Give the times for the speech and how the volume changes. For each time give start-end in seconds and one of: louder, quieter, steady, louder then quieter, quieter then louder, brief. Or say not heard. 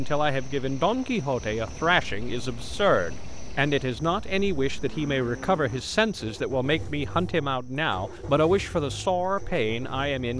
0.0-10.3 steady.